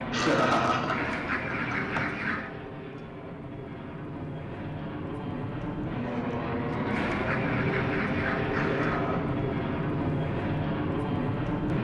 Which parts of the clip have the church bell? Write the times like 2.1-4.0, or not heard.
not heard.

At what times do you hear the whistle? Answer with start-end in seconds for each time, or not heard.
not heard.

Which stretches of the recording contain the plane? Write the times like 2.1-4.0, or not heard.
0.0-11.7.